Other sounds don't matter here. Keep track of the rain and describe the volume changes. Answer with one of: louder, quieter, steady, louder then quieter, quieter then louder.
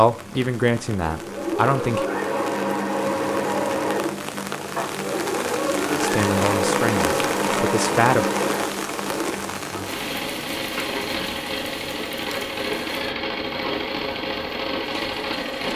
louder then quieter.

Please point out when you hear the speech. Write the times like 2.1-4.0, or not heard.
0.0-2.0, 6.0-8.2.